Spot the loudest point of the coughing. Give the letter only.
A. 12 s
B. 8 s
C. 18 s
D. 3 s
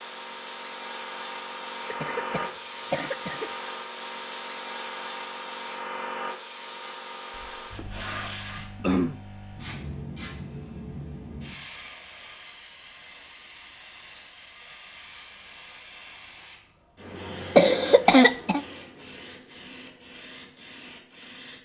C.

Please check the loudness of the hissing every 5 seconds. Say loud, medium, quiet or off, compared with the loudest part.
loud, loud, medium, medium, medium.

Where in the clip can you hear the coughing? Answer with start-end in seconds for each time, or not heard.
1.9-3.5, 7.3-9.2, 17.6-18.6.